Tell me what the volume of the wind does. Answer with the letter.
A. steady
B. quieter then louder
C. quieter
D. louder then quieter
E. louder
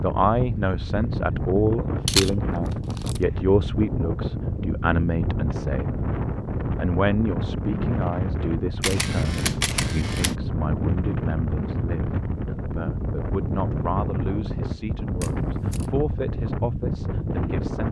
A.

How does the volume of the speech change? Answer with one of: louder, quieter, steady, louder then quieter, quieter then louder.
quieter.